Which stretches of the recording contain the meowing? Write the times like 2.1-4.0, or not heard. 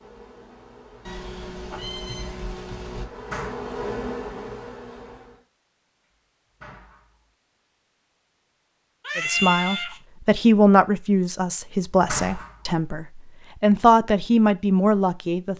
1.1-3.0, 9.0-10.0.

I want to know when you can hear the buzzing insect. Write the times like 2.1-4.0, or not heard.
0.0-5.5.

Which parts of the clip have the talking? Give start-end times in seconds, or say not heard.
9.2-15.5.